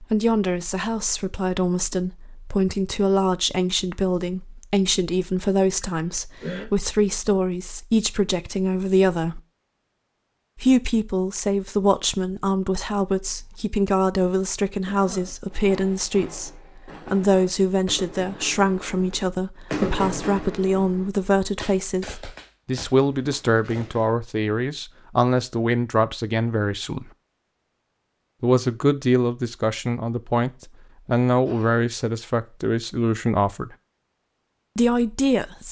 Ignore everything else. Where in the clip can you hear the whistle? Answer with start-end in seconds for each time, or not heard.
not heard.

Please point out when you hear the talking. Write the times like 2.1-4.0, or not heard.
0.0-9.4, 10.6-27.1, 28.4-33.8, 34.8-35.6.